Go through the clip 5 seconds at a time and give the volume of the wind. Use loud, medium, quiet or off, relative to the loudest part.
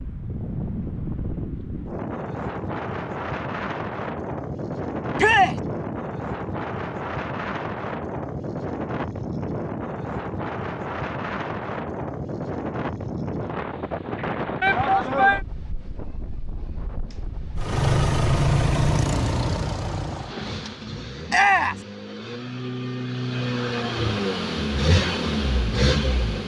loud, loud, loud, medium, off, off.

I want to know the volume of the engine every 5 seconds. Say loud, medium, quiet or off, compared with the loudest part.
off, off, off, loud, medium, loud.